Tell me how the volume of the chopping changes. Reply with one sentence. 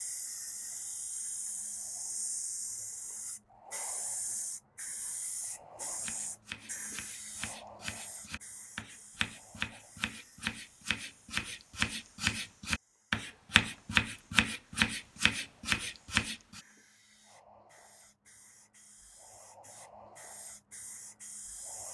The volume of the chopping goes up.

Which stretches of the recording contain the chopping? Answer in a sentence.
The chopping can be heard from 6.0 to 16.6 s.